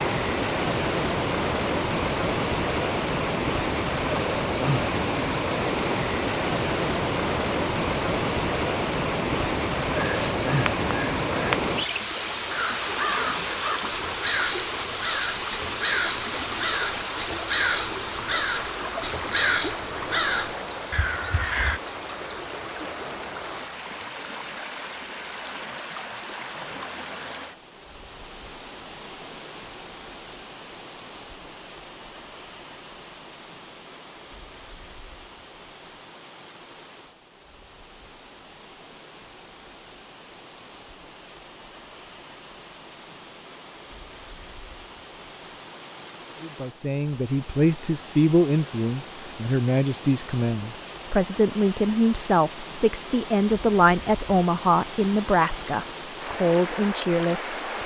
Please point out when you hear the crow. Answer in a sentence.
You can hear the crow from 9.9 to 21.8 s.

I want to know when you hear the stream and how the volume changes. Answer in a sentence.
The stream can be heard from 0.0 to 57.8 s, getting quieter then louder.